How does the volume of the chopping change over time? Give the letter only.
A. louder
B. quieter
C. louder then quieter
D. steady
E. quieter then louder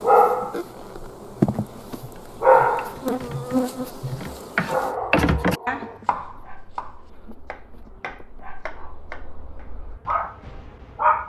C.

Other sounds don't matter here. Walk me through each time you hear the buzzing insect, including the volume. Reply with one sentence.
The buzzing insect can be heard from 0.0 to 11.2 s, getting quieter.